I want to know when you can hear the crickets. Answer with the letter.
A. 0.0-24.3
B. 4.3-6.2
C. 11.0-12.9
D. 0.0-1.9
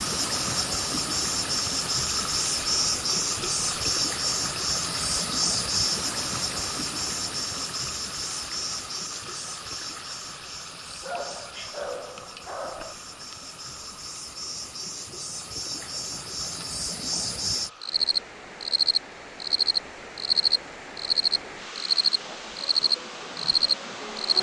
A.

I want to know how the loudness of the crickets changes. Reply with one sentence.
The volume of the crickets goes down, then up.